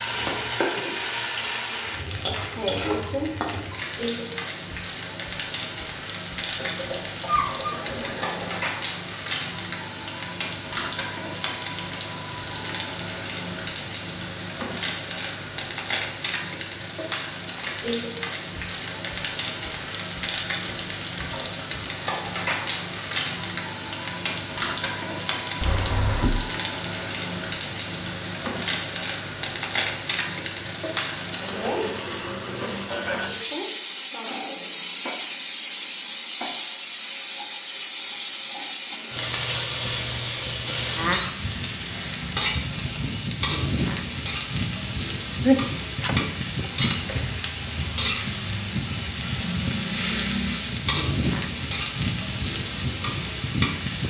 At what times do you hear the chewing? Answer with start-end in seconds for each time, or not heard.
not heard.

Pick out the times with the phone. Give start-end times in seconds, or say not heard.
not heard.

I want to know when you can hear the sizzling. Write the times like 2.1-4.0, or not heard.
0.0-54.0.